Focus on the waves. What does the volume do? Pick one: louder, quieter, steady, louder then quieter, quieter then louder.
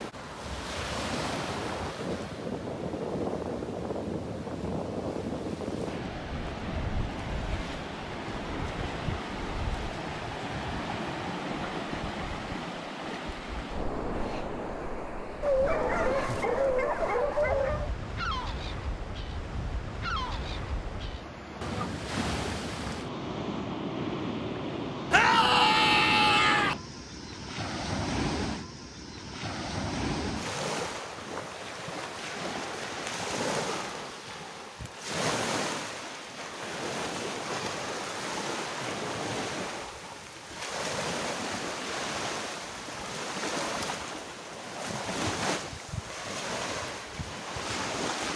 steady.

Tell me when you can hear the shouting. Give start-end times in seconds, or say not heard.
25.1-26.8.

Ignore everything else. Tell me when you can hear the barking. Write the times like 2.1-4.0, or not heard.
15.4-17.9.